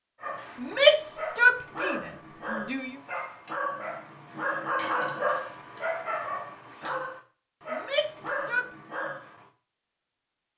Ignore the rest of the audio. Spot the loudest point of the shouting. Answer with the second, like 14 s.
1 s.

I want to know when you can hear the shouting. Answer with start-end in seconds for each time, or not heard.
0.6-3.0, 7.7-8.7.